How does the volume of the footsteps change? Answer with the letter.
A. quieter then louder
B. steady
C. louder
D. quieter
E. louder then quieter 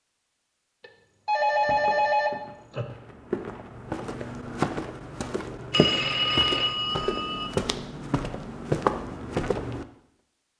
C.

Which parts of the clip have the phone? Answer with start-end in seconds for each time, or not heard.
0.8-2.9, 5.7-7.5.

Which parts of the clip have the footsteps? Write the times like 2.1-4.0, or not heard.
1.5-9.8.